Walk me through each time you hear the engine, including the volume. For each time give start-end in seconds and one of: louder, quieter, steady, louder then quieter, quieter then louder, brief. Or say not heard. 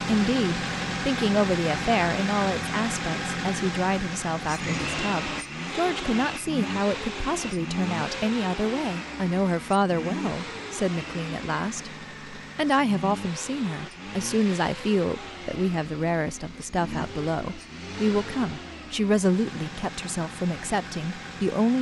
0.0-21.7 quieter.